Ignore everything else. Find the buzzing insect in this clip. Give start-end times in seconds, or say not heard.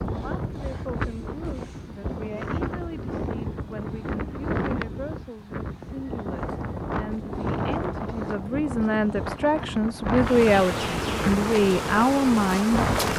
10.2-13.1.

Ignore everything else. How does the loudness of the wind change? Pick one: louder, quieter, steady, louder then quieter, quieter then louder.
steady.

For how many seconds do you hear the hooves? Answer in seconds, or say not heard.
not heard.